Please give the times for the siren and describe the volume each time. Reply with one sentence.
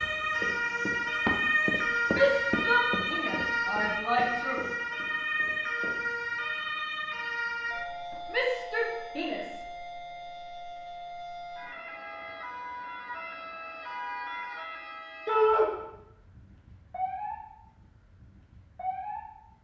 You can hear the siren from 0.0 to 19.5 s, getting quieter.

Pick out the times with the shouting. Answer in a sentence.
You can hear the shouting from 2.1 to 4.6 s, from 8.3 to 9.7 s and from 15.2 to 15.7 s.